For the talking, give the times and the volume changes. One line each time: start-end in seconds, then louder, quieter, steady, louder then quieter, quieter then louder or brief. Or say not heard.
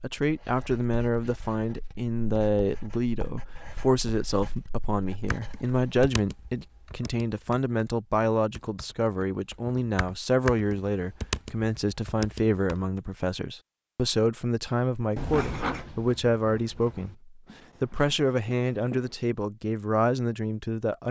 0.0-21.0 steady.